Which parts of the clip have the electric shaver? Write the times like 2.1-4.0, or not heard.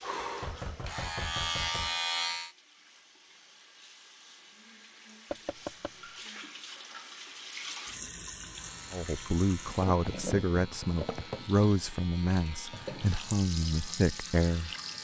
0.0-2.5, 8.4-14.9.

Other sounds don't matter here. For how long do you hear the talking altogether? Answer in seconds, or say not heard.
6 s.